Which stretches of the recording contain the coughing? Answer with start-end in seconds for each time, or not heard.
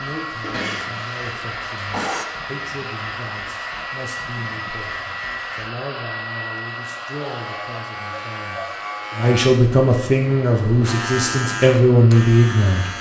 0.4-2.2.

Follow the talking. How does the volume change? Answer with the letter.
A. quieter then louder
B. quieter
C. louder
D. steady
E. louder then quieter
C.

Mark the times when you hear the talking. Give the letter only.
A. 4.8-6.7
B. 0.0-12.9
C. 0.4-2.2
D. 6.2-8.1
B.